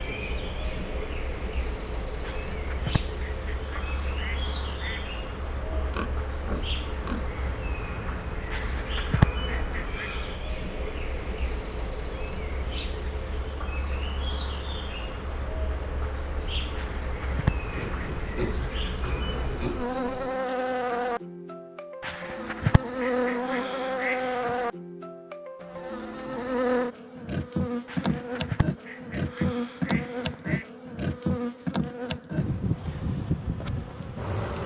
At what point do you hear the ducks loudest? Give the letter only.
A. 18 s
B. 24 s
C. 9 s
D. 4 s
C.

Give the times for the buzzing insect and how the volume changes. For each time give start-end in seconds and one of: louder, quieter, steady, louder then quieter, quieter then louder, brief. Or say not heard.
0.0-34.6 louder.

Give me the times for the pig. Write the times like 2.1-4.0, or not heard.
5.7-7.3, 17.7-20.4.